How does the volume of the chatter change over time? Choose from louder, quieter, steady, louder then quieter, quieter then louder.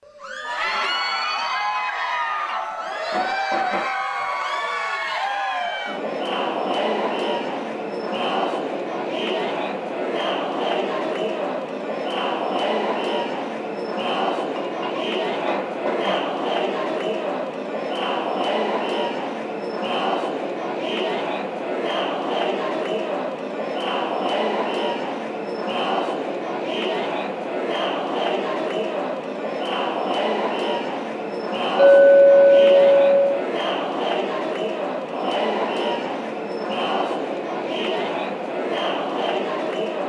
steady.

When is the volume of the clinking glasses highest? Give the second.
32 s.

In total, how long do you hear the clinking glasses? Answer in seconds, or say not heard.
5 s.